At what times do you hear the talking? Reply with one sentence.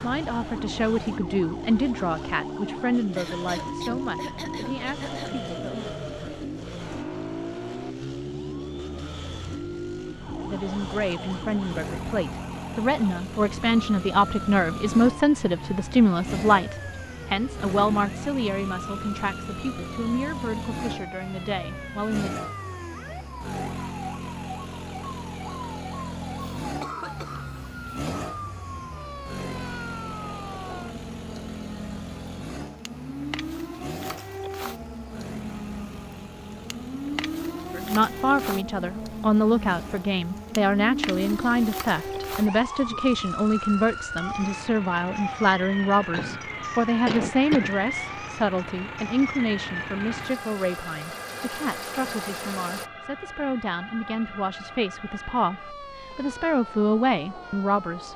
You can hear the talking from 0.0 to 5.9 s, from 10.4 to 22.4 s and from 37.8 to 58.1 s.